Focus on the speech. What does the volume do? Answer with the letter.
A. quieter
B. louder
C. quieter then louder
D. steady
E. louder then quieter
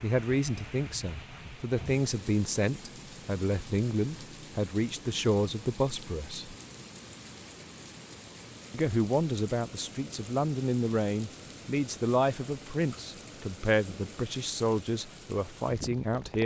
D.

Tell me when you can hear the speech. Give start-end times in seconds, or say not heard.
0.0-6.5, 8.7-16.4.